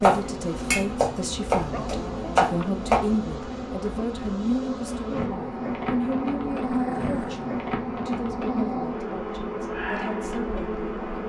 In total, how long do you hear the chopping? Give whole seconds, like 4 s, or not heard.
3 s.